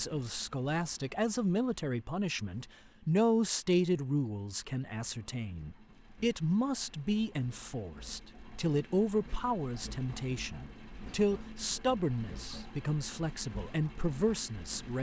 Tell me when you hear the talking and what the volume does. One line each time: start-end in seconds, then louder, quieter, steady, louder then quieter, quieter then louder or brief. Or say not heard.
0.0-14.9 steady.